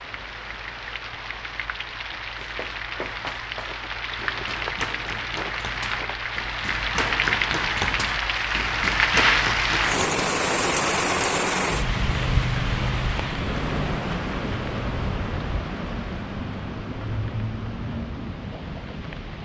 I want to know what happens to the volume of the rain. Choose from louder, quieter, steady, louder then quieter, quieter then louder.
louder then quieter.